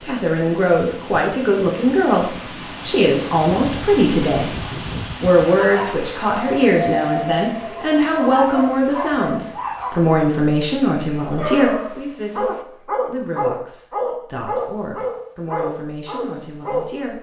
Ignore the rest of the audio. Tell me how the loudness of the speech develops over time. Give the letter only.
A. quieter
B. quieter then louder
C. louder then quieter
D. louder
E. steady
A.